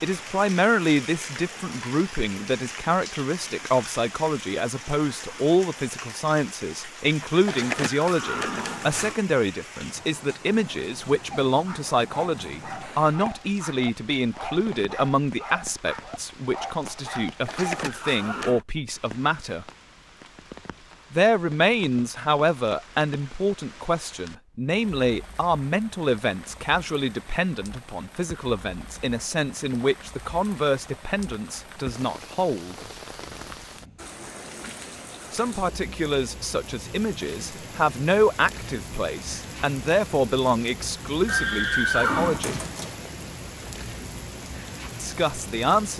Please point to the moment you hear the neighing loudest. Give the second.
42 s.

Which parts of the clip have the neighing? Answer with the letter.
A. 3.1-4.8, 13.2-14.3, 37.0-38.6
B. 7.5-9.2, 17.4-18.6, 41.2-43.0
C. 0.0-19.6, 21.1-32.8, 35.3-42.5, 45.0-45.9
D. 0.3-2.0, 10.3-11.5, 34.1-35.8
B.